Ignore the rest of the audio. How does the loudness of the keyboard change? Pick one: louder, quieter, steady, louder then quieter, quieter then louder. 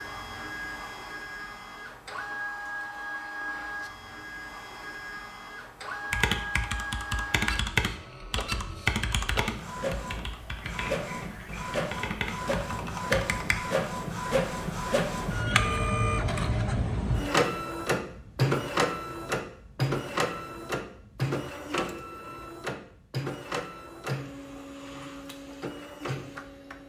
quieter then louder.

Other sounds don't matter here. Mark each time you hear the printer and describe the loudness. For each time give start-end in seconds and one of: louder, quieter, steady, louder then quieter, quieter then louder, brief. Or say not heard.
0.0-26.8 louder then quieter.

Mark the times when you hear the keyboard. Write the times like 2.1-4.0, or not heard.
6.1-13.6.